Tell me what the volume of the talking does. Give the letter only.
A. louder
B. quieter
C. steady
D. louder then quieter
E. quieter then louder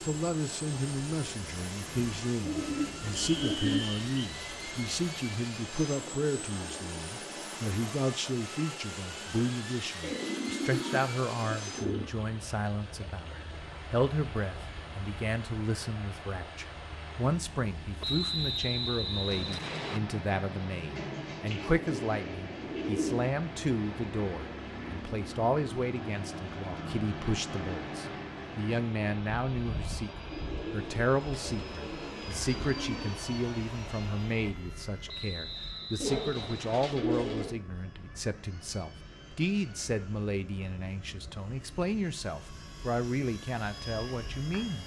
C.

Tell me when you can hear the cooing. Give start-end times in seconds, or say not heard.
2.4-3.8, 10.0-12.1, 20.9-23.3, 30.3-33.1, 36.0-37.5.